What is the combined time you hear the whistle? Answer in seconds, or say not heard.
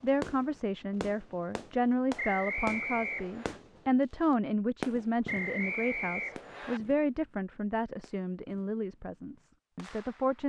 3 s.